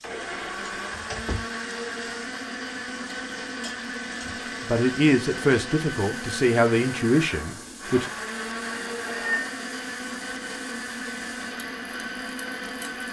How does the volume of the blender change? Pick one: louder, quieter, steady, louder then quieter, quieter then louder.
steady.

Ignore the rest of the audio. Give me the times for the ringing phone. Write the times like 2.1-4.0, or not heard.
8.7-9.7.